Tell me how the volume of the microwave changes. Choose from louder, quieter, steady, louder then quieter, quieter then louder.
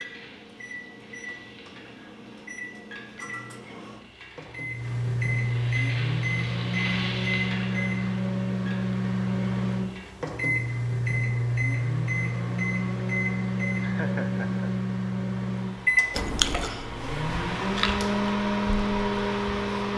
louder.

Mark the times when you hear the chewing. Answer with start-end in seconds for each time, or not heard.
16.1-18.1.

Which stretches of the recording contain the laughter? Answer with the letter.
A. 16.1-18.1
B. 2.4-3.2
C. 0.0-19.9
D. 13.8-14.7
D.